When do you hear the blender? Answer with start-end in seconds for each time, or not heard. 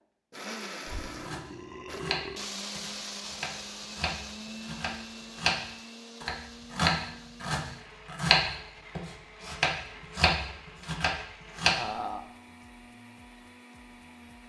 0.0-14.4.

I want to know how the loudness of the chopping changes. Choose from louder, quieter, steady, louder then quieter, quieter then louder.
louder.